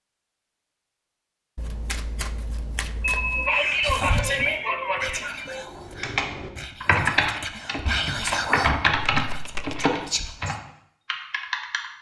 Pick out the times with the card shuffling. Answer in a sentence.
The card shuffling can be heard from 1.6 to 3.5 s and from 9.1 to 9.9 s.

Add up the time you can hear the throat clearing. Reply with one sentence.
You can hear the throat clearing for 3 seconds altogether.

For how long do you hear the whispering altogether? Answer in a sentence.
The whispering can be heard for 7 seconds in total.